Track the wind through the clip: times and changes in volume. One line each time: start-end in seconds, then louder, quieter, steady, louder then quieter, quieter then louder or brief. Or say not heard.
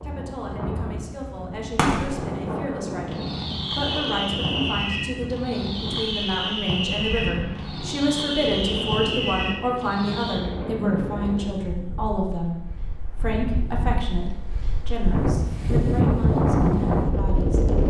0.0-17.8 louder.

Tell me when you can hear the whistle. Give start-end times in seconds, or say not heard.
not heard.